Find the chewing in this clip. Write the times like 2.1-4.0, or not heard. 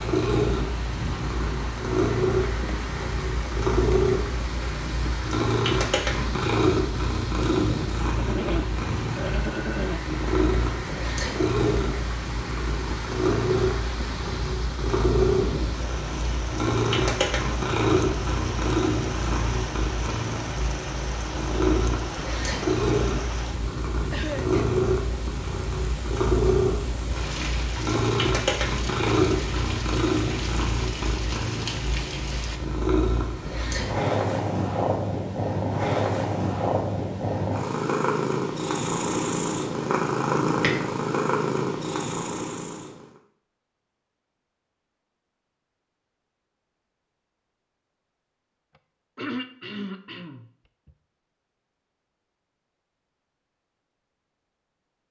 not heard.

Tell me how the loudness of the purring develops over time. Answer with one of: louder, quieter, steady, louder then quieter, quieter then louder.
steady.